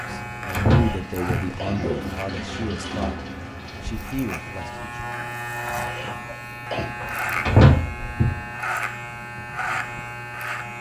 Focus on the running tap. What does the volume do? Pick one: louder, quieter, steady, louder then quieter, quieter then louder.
louder then quieter.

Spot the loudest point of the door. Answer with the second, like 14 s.
8 s.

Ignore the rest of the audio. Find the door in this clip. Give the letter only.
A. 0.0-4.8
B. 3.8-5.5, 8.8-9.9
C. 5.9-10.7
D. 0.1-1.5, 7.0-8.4
D.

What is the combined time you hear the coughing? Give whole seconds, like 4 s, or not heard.
3 s.